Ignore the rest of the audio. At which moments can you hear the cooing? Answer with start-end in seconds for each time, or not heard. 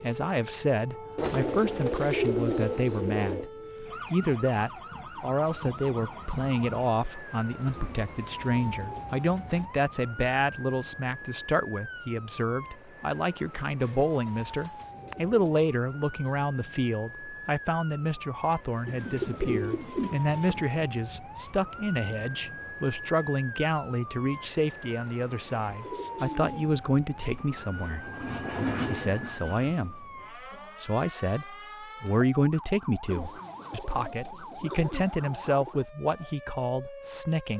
1.1-3.5, 7.7-9.7, 13.8-15.8, 18.9-20.6, 25.5-27.0, 33.1-35.8.